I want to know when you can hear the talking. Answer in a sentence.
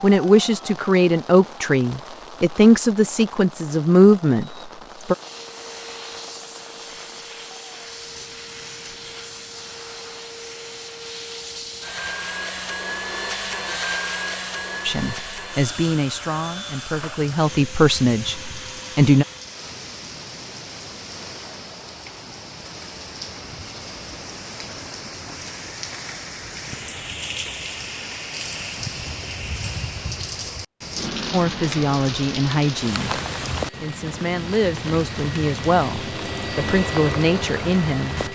The talking can be heard from 0.0 to 5.2 s, from 14.8 to 19.2 s and from 31.3 to 38.2 s.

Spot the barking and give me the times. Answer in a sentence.
The barking can't be heard in this clip.